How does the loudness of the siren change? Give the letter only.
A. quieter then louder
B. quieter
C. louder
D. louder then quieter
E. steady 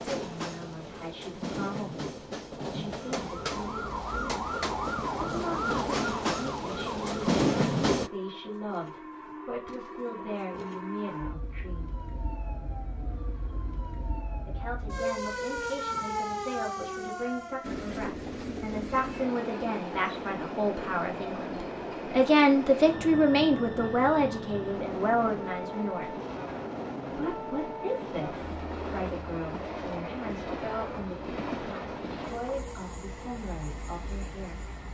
A.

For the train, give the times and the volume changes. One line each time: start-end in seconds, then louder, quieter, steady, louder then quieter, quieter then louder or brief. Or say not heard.
0.0-8.1 louder
17.6-34.8 steady.